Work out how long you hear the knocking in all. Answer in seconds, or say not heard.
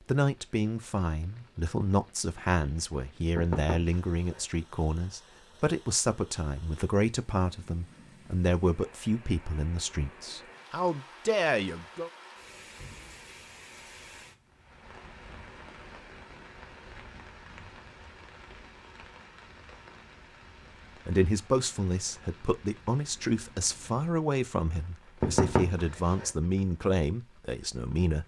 2 s.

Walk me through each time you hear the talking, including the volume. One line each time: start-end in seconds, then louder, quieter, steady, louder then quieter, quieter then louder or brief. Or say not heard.
0.1-12.1 steady
21.1-28.2 steady.